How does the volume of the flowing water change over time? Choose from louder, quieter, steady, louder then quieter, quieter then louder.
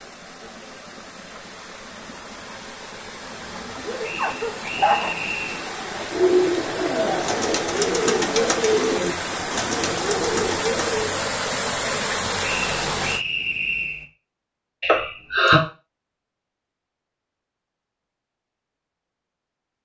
louder.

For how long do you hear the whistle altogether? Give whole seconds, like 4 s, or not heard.
3 s.